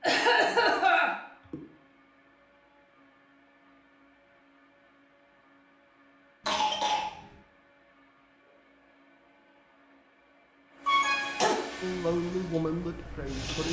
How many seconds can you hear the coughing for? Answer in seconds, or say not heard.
3 s.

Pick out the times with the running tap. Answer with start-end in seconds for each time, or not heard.
12.0-13.6.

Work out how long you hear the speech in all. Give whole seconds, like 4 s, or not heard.
2 s.